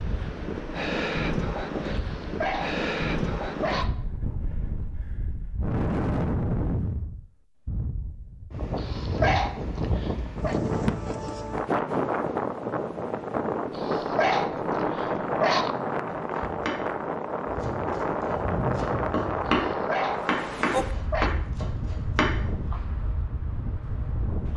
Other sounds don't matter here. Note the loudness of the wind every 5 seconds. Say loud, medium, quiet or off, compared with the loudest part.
loud, loud, loud, loud, medium.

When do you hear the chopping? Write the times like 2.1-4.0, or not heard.
16.1-22.4.